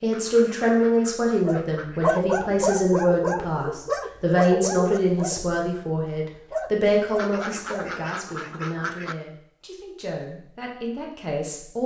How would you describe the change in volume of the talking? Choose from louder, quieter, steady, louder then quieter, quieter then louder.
quieter.